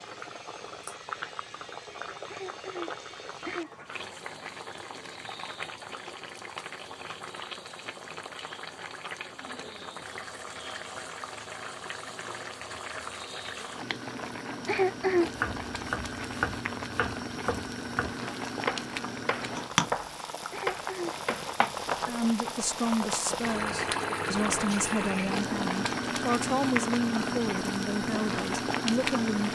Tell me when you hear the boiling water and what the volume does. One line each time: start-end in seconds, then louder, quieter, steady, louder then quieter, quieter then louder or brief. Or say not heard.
0.0-29.5 louder.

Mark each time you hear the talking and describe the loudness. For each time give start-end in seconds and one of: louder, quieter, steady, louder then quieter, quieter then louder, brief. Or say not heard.
22.1-29.5 steady.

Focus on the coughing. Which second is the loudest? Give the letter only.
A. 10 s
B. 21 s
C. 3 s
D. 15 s
D.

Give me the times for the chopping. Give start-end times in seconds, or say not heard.
15.2-22.5.